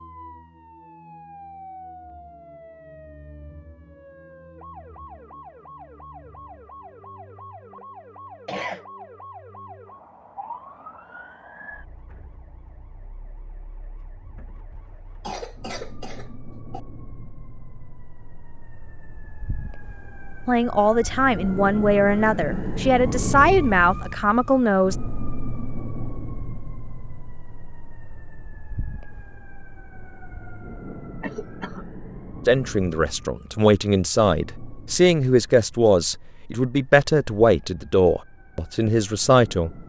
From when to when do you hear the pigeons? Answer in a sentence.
You can't hear the pigeons here.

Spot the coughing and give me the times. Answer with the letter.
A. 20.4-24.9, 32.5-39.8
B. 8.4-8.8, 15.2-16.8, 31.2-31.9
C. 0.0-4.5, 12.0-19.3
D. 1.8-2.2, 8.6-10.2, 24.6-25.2
B.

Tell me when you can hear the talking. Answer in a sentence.
You can hear the talking from 20.4 to 24.9 s and from 32.5 to 39.8 s.